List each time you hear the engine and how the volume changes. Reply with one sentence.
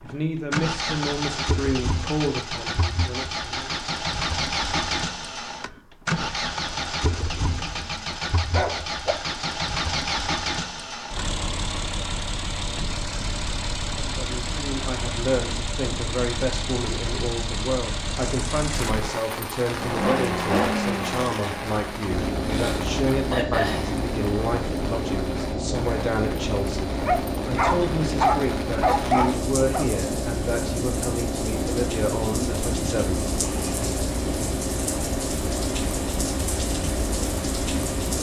The engine can be heard from 0.0 to 38.1 s, at a steady volume.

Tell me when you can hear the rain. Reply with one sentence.
You can hear the rain from 18.7 to 38.1 s.